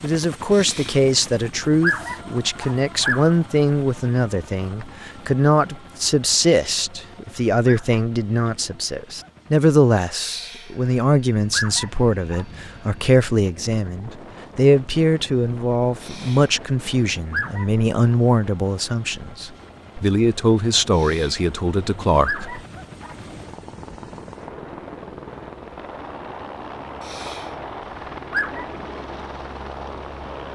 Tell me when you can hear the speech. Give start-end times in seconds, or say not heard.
0.0-22.6.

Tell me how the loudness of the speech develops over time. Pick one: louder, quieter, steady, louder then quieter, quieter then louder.
steady.